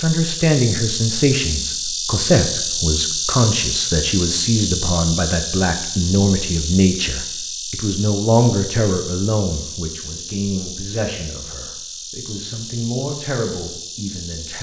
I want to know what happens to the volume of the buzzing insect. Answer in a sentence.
The loudness of the buzzing insect goes down.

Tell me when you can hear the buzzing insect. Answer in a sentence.
The buzzing insect can be heard from 0.0 to 14.5 s.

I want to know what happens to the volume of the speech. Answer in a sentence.
The loudness of the speech goes down.